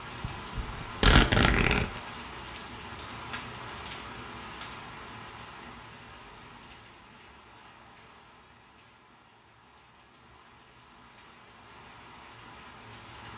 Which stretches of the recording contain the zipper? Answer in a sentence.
The zipper can be heard from 0.2 to 2.0 s.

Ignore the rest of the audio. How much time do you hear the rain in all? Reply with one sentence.
The rain can be heard for 13 seconds in total.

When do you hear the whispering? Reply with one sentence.
You can't hear the whispering here.